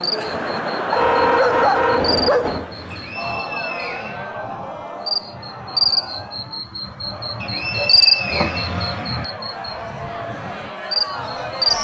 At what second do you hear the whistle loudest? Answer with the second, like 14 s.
8 s.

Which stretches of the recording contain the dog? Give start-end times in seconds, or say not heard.
0.9-2.6, 7.7-8.6.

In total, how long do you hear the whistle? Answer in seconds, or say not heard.
3 s.